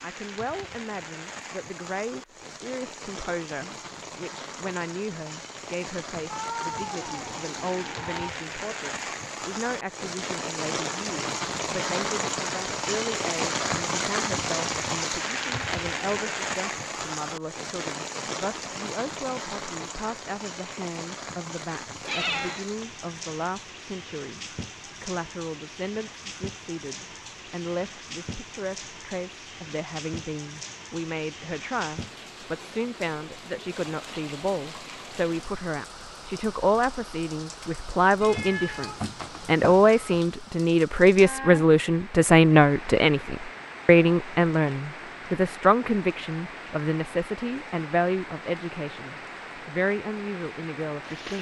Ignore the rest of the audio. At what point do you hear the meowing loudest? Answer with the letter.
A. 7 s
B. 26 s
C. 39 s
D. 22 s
D.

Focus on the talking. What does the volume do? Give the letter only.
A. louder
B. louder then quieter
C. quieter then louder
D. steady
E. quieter
A.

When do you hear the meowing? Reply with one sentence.
The meowing can be heard from 6.3 to 8.3 s, from 22.0 to 22.6 s and from 38.2 to 40.0 s.